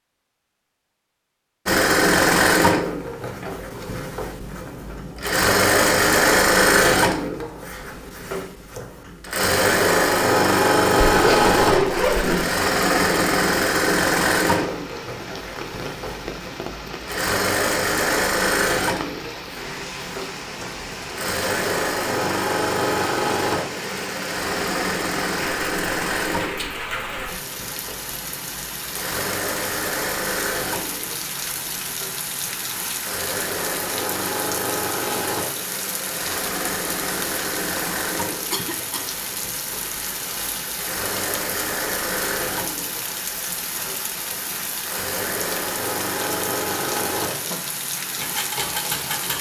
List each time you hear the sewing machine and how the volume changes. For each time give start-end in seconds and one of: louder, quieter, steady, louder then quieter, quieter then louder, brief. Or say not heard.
1.6-49.3 quieter.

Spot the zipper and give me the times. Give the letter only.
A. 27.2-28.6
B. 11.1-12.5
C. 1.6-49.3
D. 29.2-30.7
B.